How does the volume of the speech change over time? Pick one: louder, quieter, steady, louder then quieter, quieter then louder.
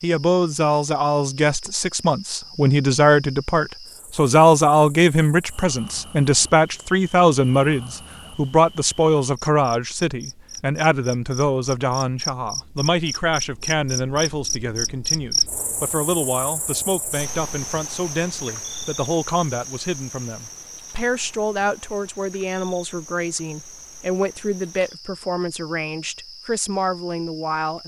quieter.